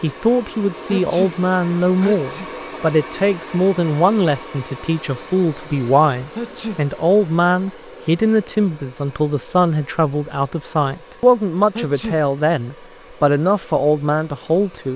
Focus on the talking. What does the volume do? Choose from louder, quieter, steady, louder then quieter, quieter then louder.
steady.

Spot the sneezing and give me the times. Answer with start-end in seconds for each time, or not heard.
0.9-1.4, 2.0-2.5, 6.3-6.8, 11.8-12.2.